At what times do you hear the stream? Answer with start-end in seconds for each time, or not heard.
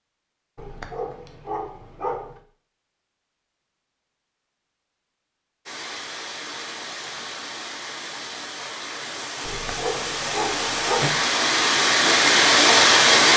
5.7-13.3.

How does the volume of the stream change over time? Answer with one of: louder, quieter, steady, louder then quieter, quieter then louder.
louder.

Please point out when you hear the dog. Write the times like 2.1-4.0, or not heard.
0.6-2.4, 9.4-11.2.